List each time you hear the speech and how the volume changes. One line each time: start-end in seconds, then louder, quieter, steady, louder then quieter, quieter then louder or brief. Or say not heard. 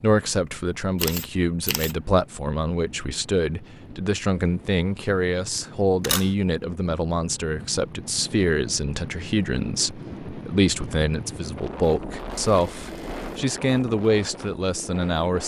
0.0-15.4 steady.